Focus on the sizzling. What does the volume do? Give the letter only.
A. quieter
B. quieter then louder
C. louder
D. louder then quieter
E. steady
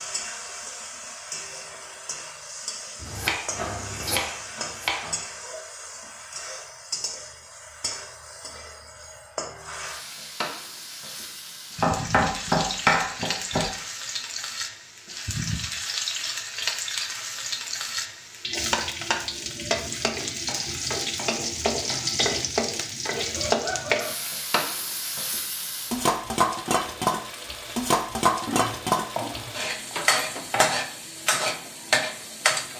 C.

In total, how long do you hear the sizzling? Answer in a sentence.
You can hear the sizzling for 33 seconds altogether.